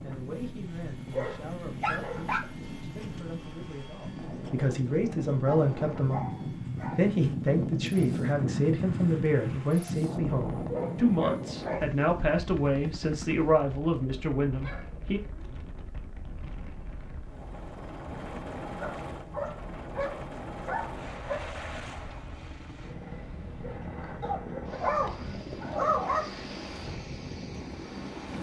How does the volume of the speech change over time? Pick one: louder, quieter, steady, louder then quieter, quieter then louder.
louder.